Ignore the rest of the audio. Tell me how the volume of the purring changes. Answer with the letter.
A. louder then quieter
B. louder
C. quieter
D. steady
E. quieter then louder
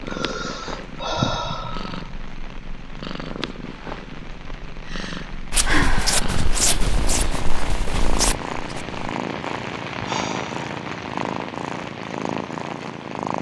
B.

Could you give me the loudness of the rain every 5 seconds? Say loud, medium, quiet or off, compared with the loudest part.
medium, loud, loud.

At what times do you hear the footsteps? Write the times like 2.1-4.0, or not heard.
5.5-9.0.